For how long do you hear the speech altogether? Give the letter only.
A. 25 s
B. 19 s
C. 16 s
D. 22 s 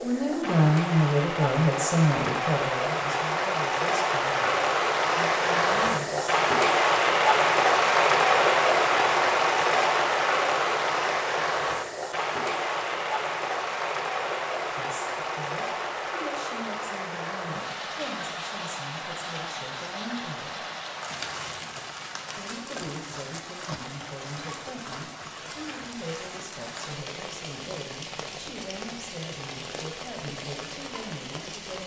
D.